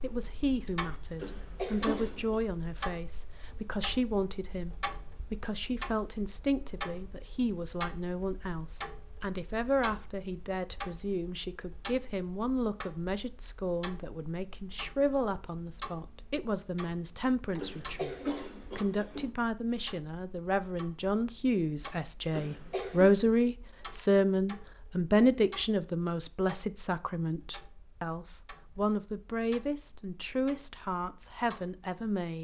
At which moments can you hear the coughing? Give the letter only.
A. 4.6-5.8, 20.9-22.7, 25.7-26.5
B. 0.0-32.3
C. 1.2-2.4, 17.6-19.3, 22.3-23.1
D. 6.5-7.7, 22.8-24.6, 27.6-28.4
C.